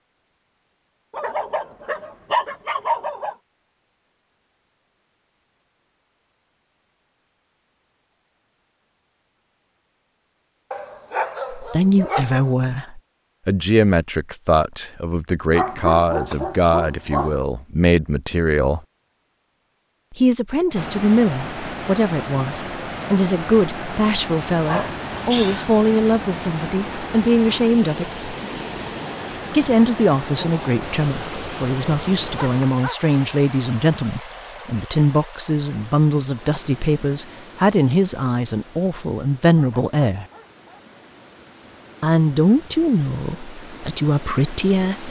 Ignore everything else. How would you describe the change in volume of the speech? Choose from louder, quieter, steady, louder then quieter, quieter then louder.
steady.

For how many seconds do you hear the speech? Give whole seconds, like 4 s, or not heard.
29 s.